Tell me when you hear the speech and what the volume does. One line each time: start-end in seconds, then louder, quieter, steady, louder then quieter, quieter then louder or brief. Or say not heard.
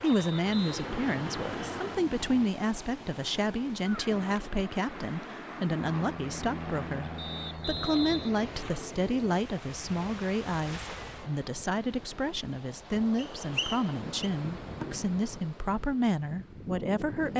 0.0-17.3 steady.